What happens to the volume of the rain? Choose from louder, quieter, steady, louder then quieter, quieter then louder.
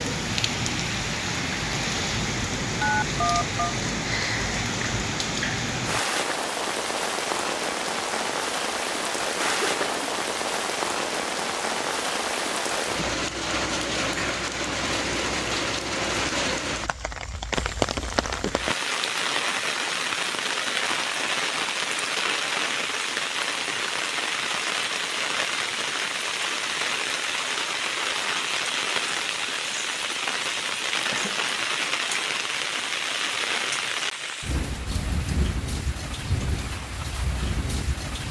steady.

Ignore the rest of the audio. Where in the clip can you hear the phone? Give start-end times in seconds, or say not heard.
2.8-3.6.